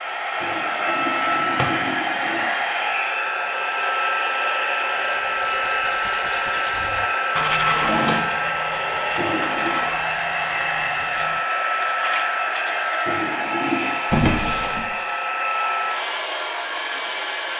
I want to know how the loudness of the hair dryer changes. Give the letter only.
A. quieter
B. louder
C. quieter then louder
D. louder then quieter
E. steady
E.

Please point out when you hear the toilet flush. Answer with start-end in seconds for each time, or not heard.
0.4-2.4, 9.2-9.8, 13.1-14.0.